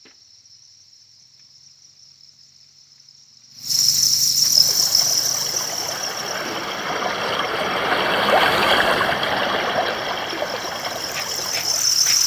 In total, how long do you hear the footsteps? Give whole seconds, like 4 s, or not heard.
not heard.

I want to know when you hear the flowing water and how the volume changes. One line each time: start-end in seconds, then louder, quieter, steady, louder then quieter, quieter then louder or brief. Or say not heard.
4.5-12.2 louder then quieter.